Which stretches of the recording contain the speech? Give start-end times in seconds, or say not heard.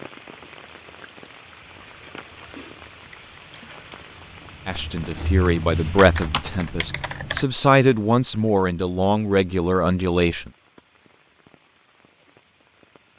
4.7-10.5.